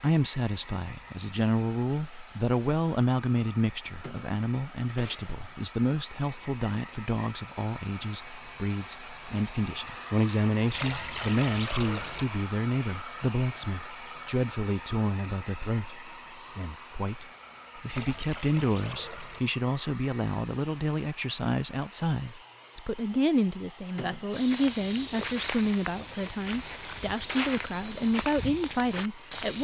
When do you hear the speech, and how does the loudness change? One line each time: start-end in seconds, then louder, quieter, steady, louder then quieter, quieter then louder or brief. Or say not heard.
0.0-29.6 steady.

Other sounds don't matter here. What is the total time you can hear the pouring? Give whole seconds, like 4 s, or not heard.
3 s.